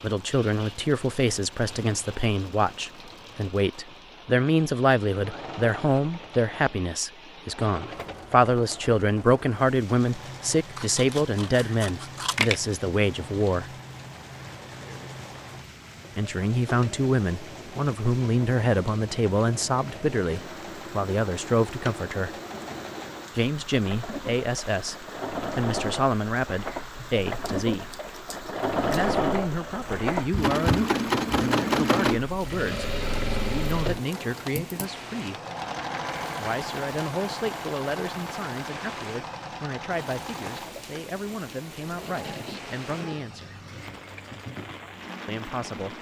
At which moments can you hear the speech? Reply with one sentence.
The speech can be heard from 0.0 to 13.7 s, from 16.1 to 22.3 s, from 23.4 to 27.9 s, from 28.9 to 35.4 s, from 36.4 to 43.5 s and from 45.2 to 45.9 s.